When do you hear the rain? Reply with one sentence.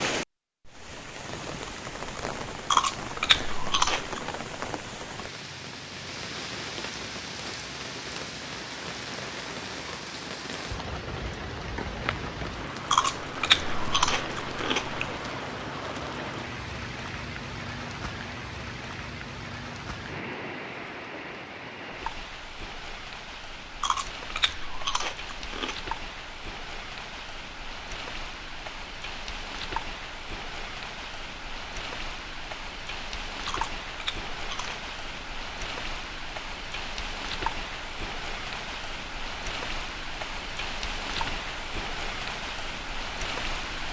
The rain can be heard from 0.0 to 43.8 s.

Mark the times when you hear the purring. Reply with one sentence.
The purring can't be heard in this clip.